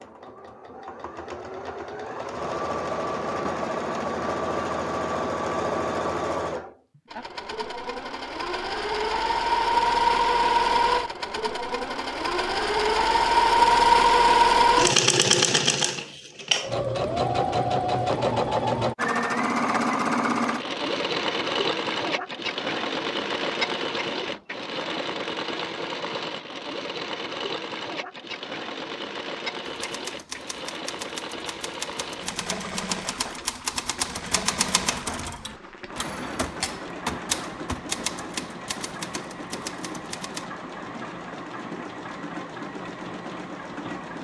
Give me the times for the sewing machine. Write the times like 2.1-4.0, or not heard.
0.0-44.1.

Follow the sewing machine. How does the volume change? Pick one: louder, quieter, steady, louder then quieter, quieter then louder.
louder then quieter.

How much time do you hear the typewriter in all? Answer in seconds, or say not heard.
11 s.